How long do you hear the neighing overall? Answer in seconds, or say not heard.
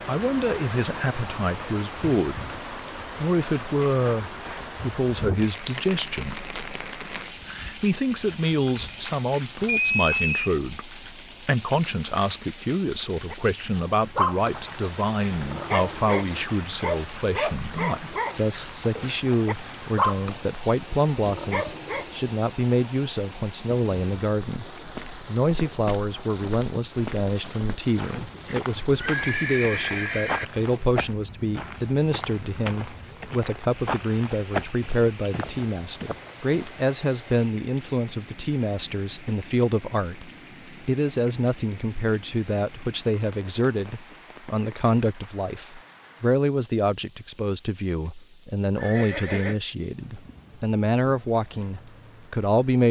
4 s.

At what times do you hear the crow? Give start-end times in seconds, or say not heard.
not heard.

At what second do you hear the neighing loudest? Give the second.
10 s.